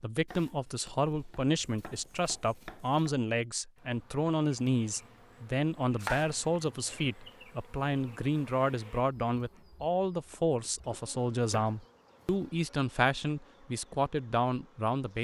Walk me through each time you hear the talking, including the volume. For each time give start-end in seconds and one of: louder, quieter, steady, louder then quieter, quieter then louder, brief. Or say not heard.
0.0-15.1 steady.